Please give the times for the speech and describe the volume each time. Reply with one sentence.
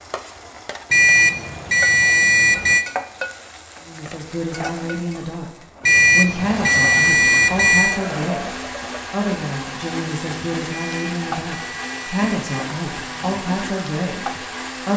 You can hear the speech briefly from 3.8 to 5.5 s; and from 6.1 to 14.9 s, at a steady volume.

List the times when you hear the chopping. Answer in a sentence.
The chopping can't be heard in this clip.